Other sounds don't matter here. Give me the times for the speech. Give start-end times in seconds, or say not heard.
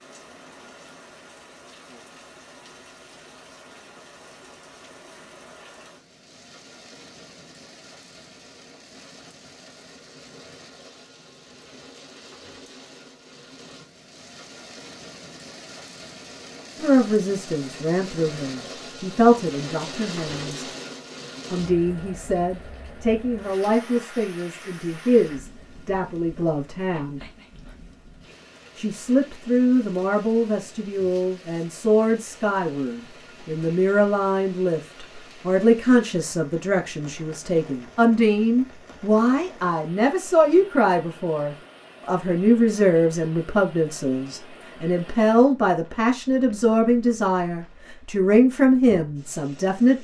16.8-20.6, 21.5-27.2, 28.8-50.0.